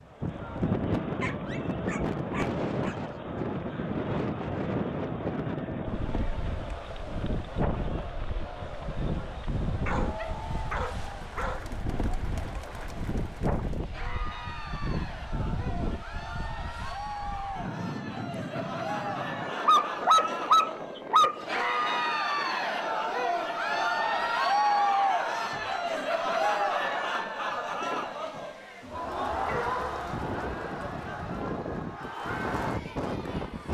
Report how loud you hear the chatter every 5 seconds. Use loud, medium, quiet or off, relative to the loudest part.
quiet, quiet, quiet, medium, loud, loud, medium.